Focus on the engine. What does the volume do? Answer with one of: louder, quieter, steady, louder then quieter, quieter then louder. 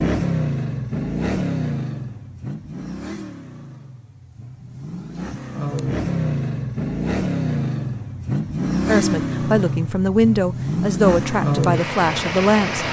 quieter then louder.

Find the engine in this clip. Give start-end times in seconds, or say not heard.
0.0-12.8.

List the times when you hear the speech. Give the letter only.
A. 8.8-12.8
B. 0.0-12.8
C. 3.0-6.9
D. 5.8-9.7
A.